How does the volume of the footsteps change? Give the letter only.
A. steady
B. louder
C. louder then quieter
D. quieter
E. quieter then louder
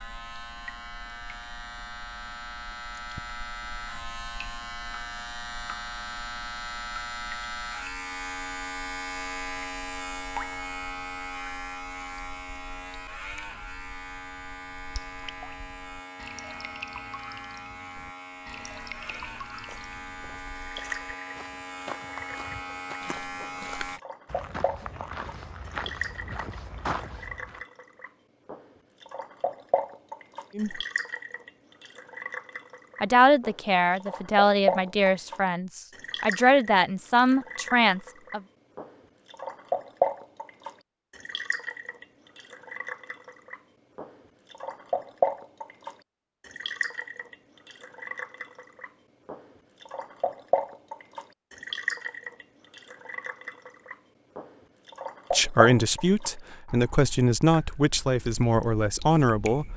B.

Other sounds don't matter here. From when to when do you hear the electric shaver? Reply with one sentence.
You can hear the electric shaver from 0.0 to 24.0 s.